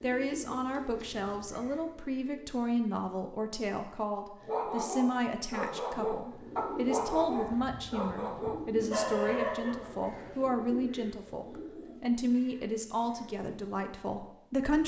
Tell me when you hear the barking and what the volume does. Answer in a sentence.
You can hear the barking from 4.4 to 10.3 s, at a steady volume.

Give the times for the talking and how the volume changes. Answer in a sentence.
The talking can be heard from 0.0 to 14.8 s, at a steady volume.